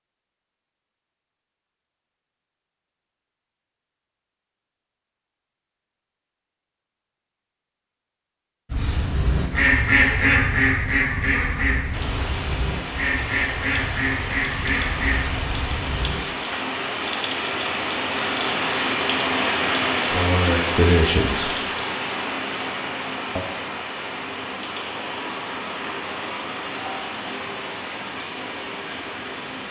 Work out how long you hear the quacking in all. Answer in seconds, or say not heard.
8 s.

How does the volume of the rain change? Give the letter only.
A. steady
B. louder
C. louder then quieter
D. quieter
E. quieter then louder
C.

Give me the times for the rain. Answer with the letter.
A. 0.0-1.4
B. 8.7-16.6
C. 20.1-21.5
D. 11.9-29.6
D.